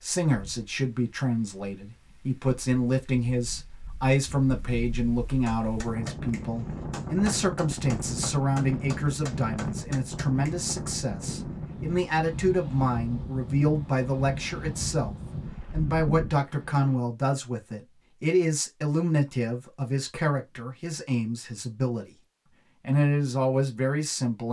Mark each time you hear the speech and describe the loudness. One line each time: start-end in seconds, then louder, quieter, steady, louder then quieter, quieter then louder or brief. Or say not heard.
0.0-22.1 steady
22.8-24.4 brief.